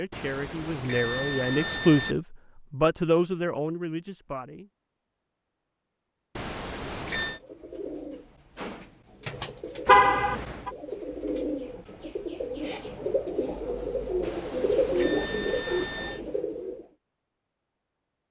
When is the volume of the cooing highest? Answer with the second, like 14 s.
15 s.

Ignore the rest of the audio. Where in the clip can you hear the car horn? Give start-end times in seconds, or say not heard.
9.8-10.7.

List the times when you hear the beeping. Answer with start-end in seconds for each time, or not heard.
0.1-2.1, 6.3-7.4, 14.2-16.2.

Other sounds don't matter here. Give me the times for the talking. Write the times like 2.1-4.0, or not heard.
0.0-4.7.